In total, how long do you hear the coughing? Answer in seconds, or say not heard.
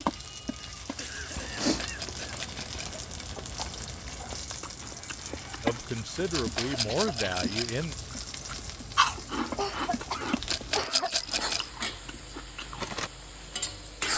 4 s.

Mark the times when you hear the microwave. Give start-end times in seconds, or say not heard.
not heard.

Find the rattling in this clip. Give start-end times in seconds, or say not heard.
1.6-3.0, 6.3-7.8, 10.4-11.7.